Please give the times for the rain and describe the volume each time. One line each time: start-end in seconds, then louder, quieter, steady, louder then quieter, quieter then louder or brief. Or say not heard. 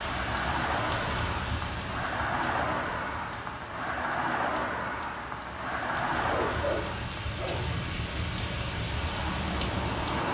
0.0-10.2 quieter then louder.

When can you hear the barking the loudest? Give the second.
7 s.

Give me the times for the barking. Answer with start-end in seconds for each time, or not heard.
6.2-7.8.